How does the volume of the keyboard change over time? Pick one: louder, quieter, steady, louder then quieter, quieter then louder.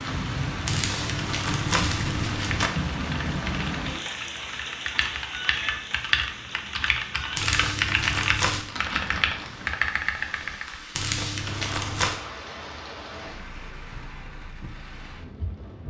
louder.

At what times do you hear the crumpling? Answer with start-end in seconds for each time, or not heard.
0.7-2.7, 7.3-8.7, 10.9-12.2.